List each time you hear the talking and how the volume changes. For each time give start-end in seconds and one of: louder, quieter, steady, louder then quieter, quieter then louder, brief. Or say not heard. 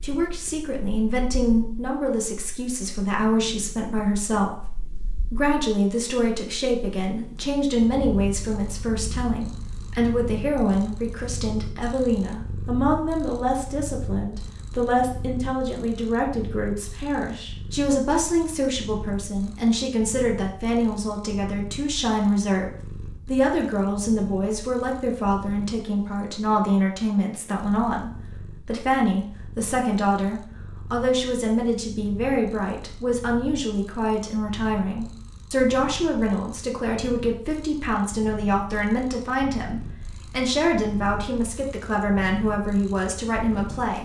0.0-43.9 steady.